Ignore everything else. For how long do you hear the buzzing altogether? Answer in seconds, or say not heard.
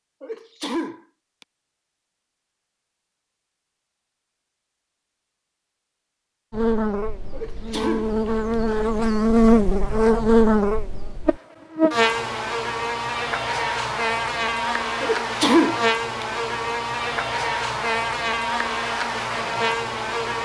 14 s.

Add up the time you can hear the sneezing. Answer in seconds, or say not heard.
4 s.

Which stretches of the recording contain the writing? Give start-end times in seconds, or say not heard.
not heard.